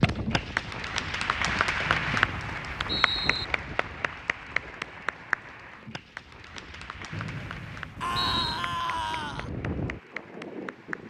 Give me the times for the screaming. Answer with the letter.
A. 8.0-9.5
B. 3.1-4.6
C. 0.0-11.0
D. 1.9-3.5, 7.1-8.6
A.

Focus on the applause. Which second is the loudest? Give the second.
2 s.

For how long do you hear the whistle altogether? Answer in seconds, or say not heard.
3 s.